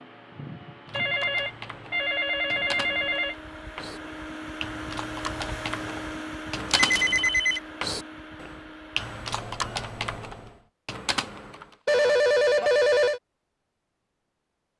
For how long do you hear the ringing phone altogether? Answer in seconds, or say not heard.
5 s.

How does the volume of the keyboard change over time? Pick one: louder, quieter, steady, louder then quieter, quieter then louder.
louder.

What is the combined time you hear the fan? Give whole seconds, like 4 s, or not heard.
11 s.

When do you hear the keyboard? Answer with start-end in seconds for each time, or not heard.
0.8-11.8.